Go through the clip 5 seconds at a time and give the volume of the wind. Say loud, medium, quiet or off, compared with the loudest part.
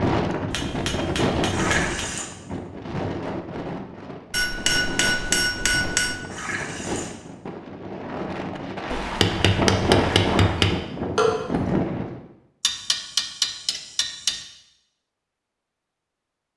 loud, loud, loud, off.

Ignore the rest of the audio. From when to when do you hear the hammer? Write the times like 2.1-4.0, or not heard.
0.5-2.0, 4.3-6.2, 8.9-10.8, 12.6-14.4.